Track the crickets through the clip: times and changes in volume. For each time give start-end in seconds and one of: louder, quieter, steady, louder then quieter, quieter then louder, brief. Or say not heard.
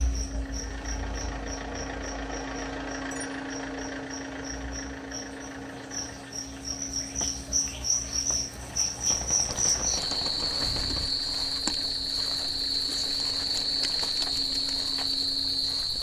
0.0-15.9 louder.